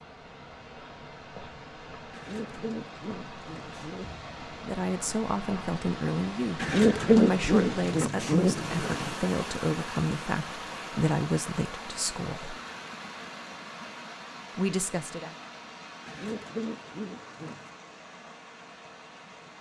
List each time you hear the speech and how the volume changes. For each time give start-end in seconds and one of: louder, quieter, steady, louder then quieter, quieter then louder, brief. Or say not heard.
4.6-12.6 steady
14.6-15.3 brief.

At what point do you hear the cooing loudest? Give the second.
7 s.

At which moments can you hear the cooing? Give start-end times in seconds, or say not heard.
2.1-4.3, 6.6-9.2, 16.1-17.7.